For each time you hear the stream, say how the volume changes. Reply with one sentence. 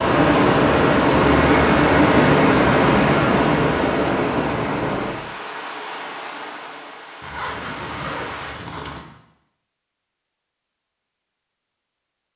The stream can be heard from 0.0 to 8.6 s, getting quieter.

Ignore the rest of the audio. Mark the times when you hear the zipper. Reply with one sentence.
You can hear the zipper from 7.2 to 9.1 s.